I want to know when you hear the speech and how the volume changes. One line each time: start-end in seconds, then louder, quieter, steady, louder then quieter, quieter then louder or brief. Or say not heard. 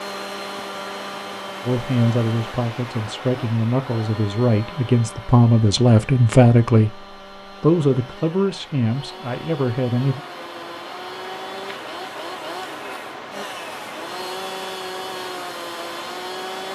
1.6-10.2 louder then quieter.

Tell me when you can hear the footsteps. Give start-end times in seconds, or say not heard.
not heard.